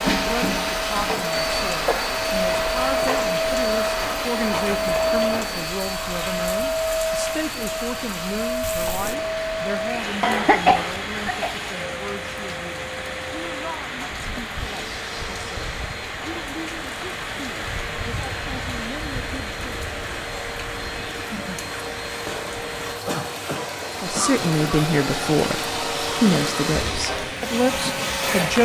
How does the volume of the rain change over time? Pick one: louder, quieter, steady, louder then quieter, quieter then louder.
steady.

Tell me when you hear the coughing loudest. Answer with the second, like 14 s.
11 s.